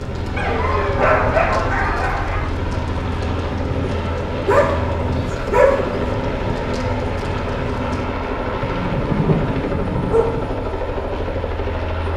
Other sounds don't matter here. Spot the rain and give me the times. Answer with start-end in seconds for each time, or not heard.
0.0-8.1.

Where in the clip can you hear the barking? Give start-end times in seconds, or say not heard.
0.3-2.4, 4.5-6.0, 8.6-10.5.